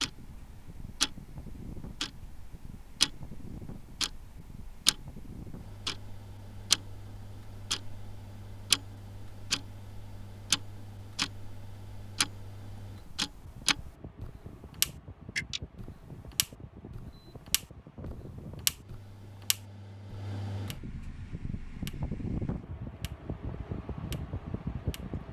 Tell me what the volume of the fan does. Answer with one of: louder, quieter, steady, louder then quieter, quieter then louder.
louder.